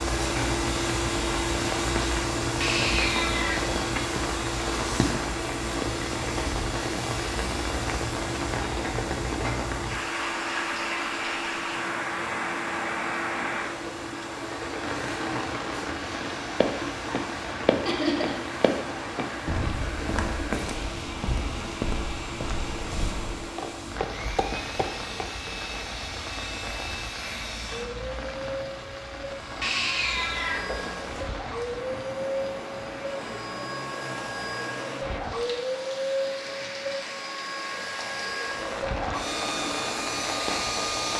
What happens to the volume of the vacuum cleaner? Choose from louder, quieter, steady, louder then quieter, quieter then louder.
quieter then louder.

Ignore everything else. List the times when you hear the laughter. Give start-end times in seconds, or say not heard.
17.9-18.4.